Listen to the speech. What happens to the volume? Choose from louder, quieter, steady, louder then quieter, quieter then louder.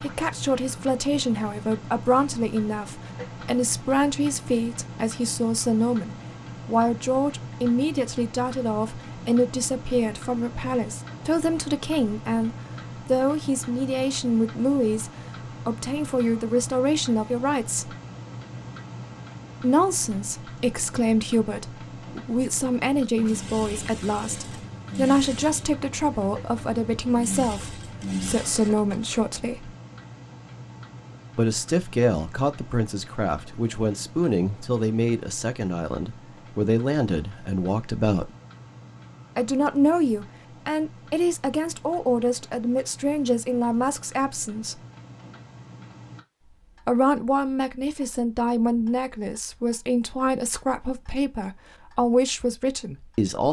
steady.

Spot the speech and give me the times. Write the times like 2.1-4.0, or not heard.
0.0-17.9, 19.6-29.8, 31.4-38.3, 39.4-44.8, 46.9-53.4.